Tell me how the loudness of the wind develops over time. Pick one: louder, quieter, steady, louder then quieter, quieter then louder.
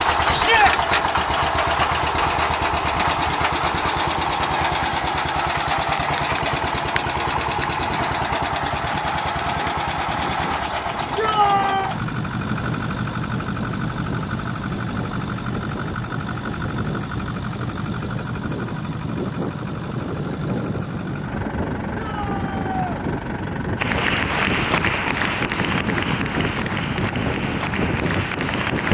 louder.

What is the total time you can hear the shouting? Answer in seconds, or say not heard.
2 s.